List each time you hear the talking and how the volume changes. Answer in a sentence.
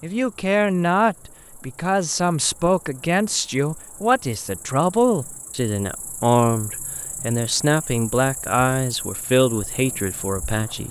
The talking can be heard from 0.0 to 10.8 s, at a steady volume.